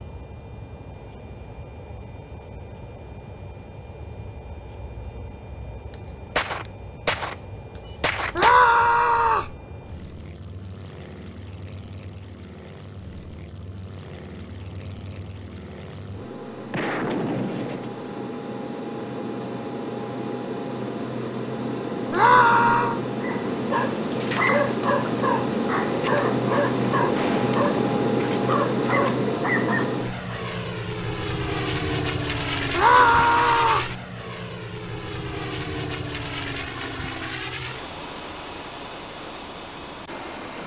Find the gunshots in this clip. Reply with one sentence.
You can hear the gunshots from 6.3 to 7.3 s, from 8.0 to 8.6 s, from 16.7 to 17.9 s and from 27.1 to 27.6 s.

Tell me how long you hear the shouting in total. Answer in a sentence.
The shouting can be heard for 3 seconds in total.